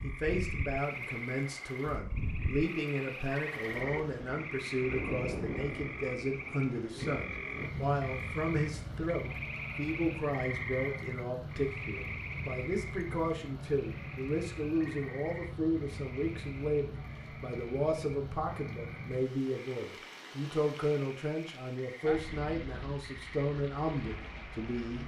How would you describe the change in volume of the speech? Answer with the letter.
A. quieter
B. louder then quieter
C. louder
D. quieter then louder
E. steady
E.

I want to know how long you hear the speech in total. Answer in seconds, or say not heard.
25 s.